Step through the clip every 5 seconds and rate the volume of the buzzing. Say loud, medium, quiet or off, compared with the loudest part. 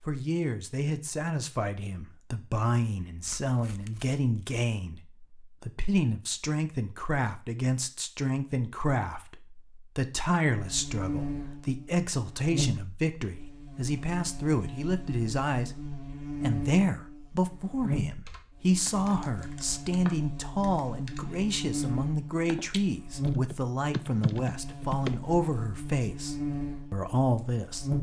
off, off, loud, loud, loud, loud.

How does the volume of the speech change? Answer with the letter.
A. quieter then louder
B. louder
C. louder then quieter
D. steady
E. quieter
D.